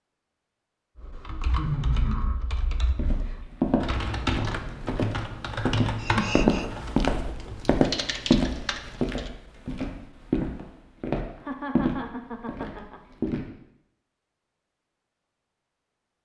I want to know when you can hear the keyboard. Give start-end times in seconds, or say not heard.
1.0-9.3.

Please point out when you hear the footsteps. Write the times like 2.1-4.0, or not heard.
2.9-13.5.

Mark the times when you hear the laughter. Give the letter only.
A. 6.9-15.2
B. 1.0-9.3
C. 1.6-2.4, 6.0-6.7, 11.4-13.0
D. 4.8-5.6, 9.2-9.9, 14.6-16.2
C.